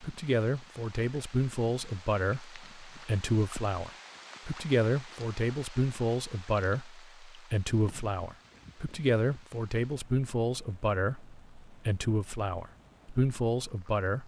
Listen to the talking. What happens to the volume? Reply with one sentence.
The volume of the talking stays about the same.